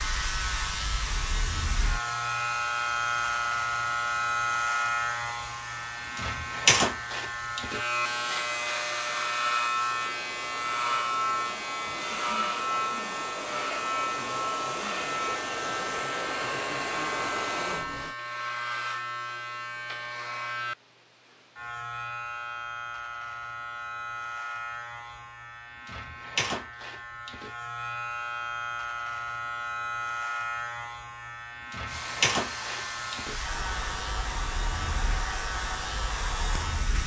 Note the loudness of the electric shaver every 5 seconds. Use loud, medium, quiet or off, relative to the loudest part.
loud, loud, loud, medium, medium, medium, medium, medium.